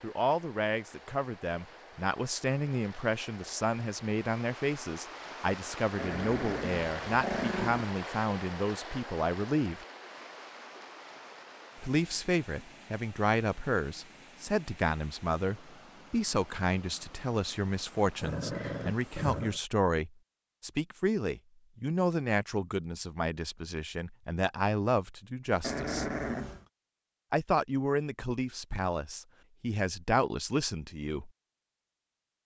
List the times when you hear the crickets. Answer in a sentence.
The crickets can't be heard in this clip.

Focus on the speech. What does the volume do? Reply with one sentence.
The volume of the speech stays about the same.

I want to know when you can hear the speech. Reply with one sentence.
The speech can be heard from 0.0 to 9.8 s, from 11.8 to 26.1 s and from 27.3 to 31.3 s.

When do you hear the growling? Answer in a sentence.
You can hear the growling from 6.0 to 7.8 s, from 18.2 to 19.6 s and from 25.6 to 26.6 s.